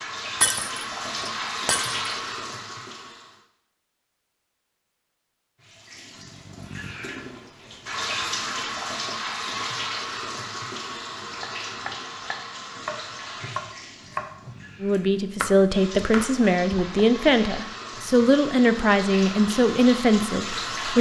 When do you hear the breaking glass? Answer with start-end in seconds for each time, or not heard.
0.4-2.1.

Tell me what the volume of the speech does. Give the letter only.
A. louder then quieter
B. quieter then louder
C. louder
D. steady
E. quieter
D.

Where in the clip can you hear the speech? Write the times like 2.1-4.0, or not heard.
14.8-20.9.